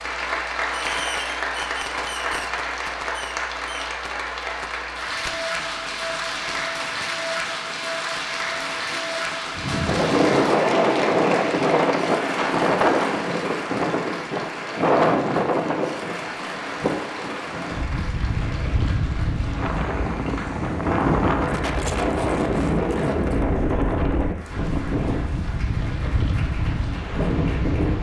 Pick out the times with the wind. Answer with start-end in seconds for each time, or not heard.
9.6-27.9.